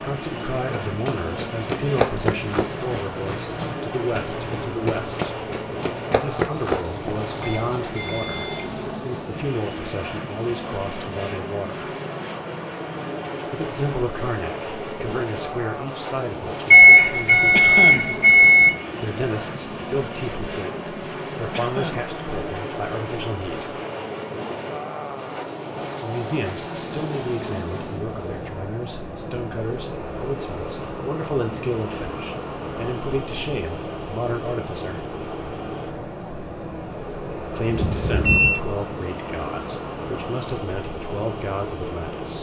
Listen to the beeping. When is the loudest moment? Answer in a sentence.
The volume of the beeping peaks at 17 seconds.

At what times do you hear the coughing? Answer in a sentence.
You can hear the coughing from 17.5 to 18.1 s and from 21.5 to 22.1 s.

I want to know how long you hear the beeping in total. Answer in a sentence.
You can hear the beeping for 4 seconds altogether.